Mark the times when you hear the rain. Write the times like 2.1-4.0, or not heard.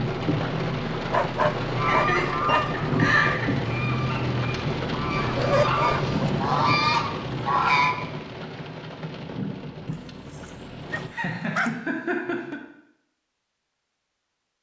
0.0-11.1.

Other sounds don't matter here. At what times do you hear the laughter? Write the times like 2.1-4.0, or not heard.
1.8-3.5, 11.1-12.6.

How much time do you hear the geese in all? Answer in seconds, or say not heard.
6 s.